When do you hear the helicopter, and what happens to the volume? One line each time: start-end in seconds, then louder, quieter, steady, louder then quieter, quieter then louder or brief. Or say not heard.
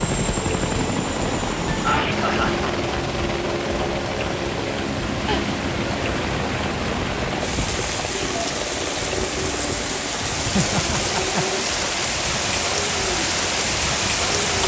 0.0-14.6 quieter.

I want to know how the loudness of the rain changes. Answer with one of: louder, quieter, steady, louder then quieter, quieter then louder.
louder.